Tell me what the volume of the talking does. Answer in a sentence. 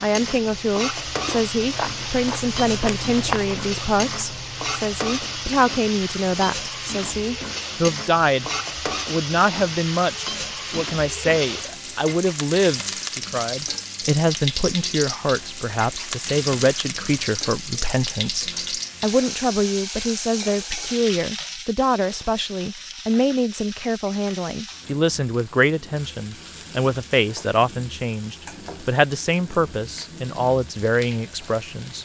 The volume of the talking stays about the same.